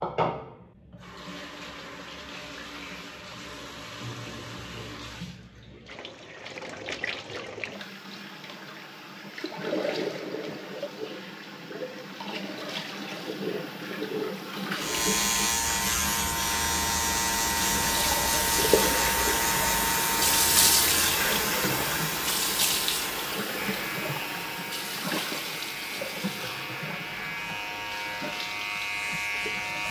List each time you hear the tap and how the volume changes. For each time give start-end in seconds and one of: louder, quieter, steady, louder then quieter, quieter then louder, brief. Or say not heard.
0.0-29.8 louder then quieter.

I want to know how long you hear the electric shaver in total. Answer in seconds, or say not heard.
15 s.